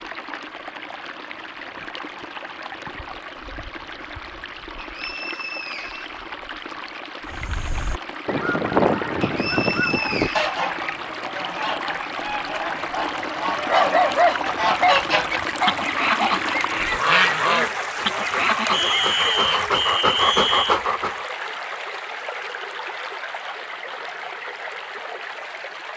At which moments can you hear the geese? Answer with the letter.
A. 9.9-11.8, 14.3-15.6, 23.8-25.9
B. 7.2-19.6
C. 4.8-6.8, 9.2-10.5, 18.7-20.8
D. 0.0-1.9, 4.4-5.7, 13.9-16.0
B.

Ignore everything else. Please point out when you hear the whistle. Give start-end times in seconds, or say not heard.
4.8-6.8, 9.2-10.5, 18.7-20.8.